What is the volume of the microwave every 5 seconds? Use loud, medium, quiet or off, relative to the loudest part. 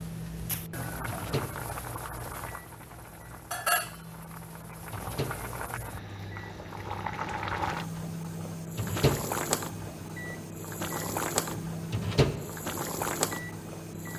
medium, loud, loud.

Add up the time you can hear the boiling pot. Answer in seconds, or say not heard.
14 s.